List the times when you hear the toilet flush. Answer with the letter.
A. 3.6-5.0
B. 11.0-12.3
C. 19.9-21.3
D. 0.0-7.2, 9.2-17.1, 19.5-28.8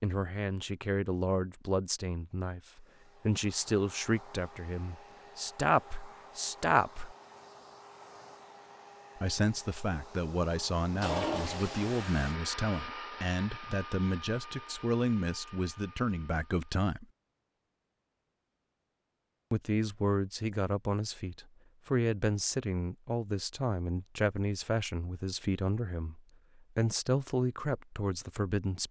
B.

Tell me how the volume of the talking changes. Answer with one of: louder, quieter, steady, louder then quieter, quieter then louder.
steady.